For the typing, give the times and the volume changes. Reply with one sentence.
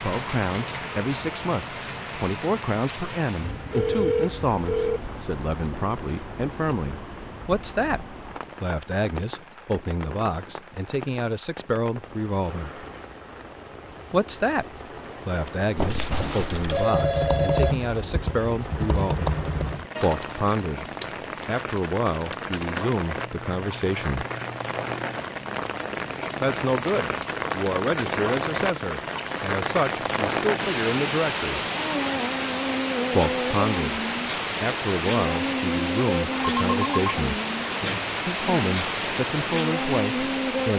You can hear the typing from 15.8 to 25.2 s, getting quieter.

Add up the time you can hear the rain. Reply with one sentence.
You can hear the rain for 41 seconds altogether.